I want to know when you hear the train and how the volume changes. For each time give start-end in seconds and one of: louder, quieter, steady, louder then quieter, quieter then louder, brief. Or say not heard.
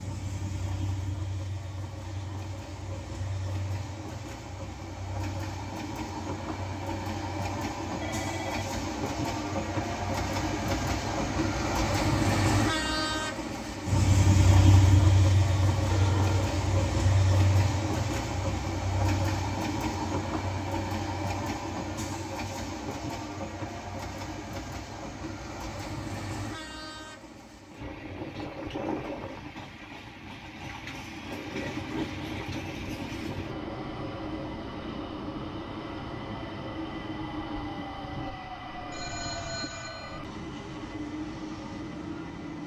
0.0-42.6 louder then quieter.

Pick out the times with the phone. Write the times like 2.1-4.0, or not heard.
8.0-8.7, 15.8-16.5, 38.9-40.2.